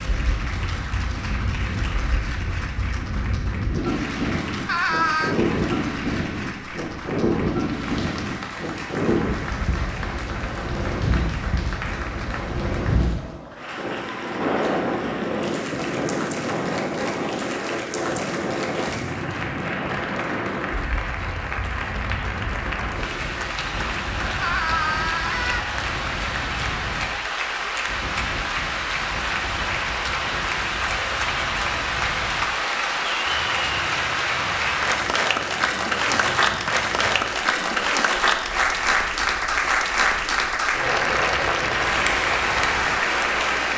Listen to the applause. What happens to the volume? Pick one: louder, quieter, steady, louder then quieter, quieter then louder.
louder.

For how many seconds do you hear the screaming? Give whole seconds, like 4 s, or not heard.
2 s.